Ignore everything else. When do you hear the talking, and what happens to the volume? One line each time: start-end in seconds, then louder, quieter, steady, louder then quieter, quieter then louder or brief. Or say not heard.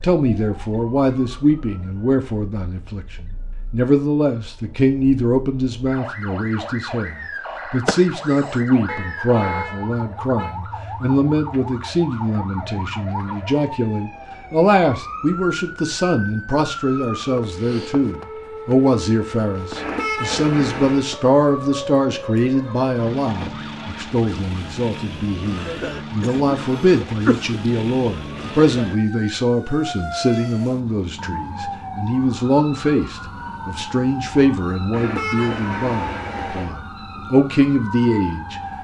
0.0-38.6 steady.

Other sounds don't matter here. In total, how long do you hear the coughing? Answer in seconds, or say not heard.
3 s.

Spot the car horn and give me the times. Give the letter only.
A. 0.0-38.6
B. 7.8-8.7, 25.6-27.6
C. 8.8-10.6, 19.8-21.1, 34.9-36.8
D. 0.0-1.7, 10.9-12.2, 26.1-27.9
C.